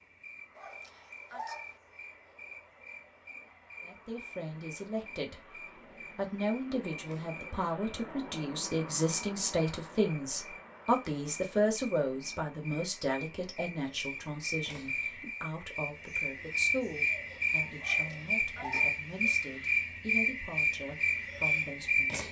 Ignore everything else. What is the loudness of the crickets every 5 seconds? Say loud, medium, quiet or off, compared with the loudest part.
quiet, quiet, quiet, loud, loud.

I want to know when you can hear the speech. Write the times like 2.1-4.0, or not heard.
3.8-22.2.